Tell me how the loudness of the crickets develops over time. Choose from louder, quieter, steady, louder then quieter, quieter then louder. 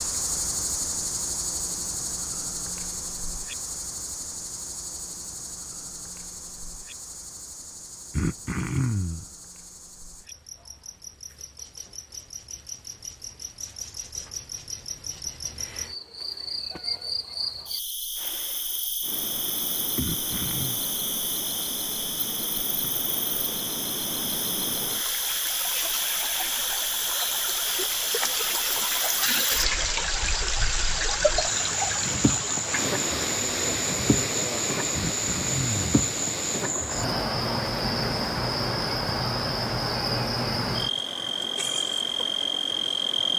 louder.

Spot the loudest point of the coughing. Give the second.
9 s.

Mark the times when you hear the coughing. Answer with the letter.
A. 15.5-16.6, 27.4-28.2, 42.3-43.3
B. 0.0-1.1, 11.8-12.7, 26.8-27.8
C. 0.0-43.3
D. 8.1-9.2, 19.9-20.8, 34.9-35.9
D.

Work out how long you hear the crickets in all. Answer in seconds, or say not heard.
43 s.